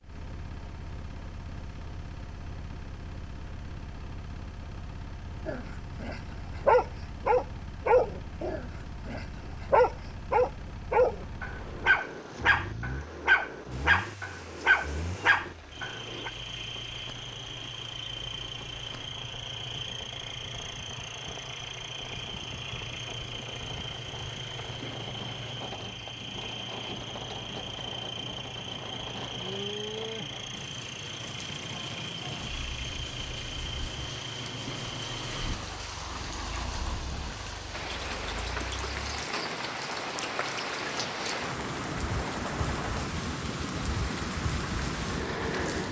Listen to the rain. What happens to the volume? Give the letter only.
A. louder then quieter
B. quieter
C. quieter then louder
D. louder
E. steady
D.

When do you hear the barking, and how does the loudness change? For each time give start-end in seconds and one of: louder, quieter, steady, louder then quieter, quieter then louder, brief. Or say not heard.
5.5-16.3 steady.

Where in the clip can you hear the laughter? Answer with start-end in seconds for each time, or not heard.
not heard.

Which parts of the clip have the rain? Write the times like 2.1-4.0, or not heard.
13.7-45.8.